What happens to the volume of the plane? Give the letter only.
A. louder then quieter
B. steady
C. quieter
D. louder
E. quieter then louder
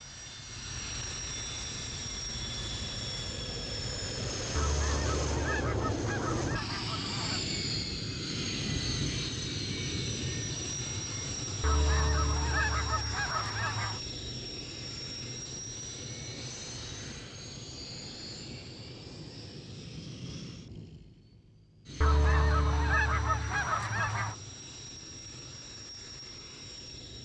C.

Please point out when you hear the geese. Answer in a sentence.
The geese can be heard from 4.5 to 7.5 s, from 11.6 to 14.0 s and from 22.0 to 24.4 s.